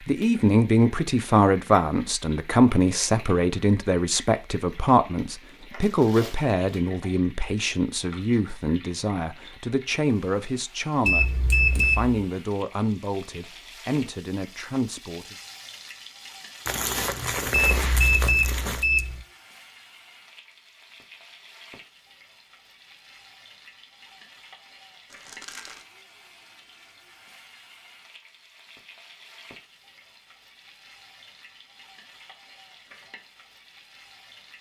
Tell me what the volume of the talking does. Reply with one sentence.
The volume of the talking goes down.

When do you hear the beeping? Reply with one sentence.
The beeping can be heard from 11.1 to 12.2 s and from 17.5 to 19.2 s.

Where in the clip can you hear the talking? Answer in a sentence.
You can hear the talking from 0.1 to 15.3 s.